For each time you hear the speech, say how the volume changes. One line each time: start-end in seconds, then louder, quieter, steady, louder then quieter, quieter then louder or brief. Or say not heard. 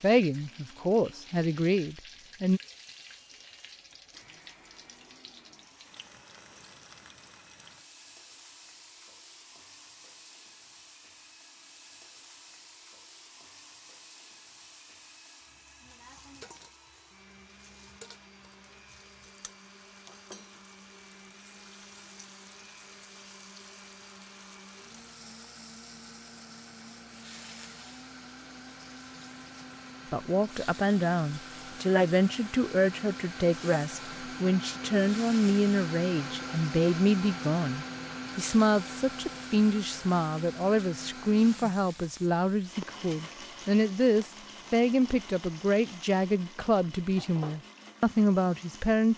0.0-2.6 brief
30.1-49.1 steady.